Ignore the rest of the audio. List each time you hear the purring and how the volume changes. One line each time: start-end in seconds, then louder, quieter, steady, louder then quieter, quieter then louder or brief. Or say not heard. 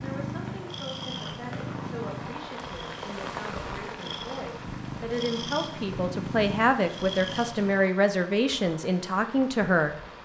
0.0-7.8 quieter then louder.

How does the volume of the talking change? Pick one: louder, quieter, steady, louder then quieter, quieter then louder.
louder.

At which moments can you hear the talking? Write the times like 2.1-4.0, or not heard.
0.0-9.9.